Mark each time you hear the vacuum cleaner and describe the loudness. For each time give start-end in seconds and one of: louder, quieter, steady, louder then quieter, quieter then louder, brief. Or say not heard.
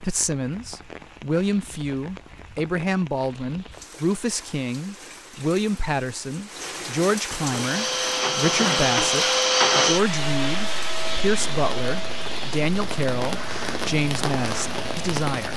7.3-15.2 quieter.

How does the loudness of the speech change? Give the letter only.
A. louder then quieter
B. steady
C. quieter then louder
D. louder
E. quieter
B.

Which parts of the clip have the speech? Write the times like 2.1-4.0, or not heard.
0.0-15.5.